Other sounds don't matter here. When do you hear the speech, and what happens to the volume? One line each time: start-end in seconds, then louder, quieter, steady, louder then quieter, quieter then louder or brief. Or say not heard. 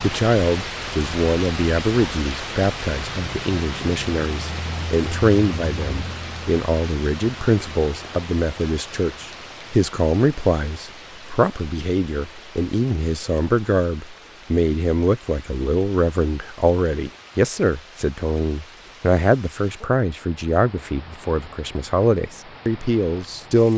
0.0-23.7 steady.